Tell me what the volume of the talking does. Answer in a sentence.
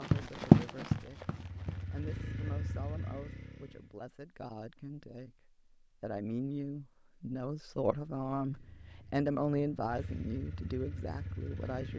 The volume of the talking goes up.